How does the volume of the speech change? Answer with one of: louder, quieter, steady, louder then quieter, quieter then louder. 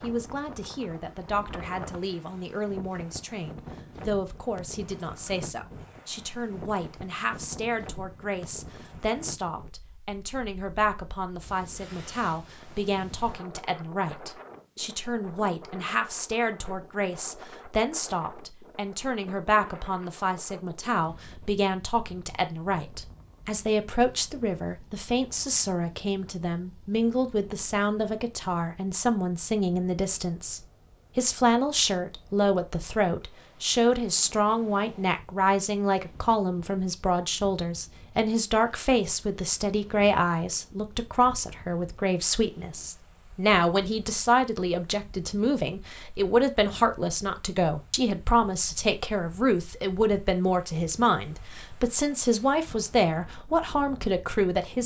louder.